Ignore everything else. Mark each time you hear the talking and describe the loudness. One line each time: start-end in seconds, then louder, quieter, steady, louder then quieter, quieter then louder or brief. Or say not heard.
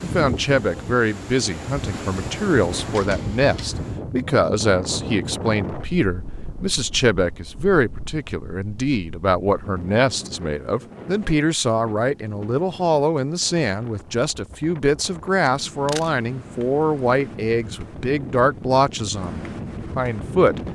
0.0-20.6 steady.